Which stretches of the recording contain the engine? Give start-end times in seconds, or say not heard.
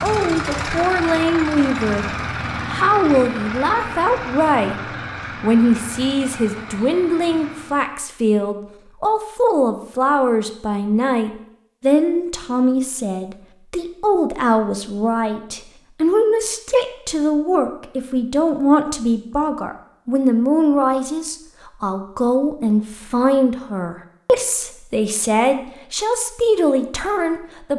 0.0-8.0.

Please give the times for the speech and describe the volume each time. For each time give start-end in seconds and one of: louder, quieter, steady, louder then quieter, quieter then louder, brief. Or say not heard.
0.0-4.8 quieter then louder
5.4-27.7 steady.